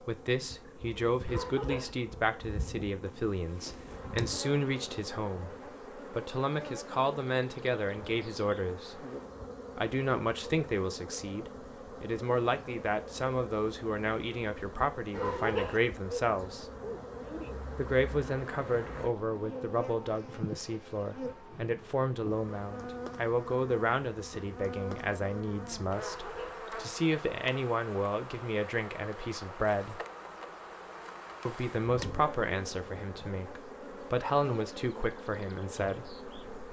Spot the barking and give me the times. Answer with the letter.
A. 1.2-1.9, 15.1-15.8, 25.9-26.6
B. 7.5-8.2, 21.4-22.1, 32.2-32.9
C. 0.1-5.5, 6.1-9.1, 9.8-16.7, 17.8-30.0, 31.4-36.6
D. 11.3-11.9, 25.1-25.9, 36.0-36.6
A.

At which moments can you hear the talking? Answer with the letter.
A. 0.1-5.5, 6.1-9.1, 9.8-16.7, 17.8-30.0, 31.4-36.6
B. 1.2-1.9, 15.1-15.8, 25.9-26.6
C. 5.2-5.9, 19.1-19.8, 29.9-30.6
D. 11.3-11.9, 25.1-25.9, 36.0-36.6
A.